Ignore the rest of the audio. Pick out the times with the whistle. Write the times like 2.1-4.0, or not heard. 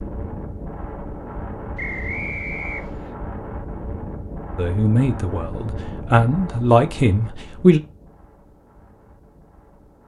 1.8-3.1.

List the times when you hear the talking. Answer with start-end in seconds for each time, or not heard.
4.5-7.8.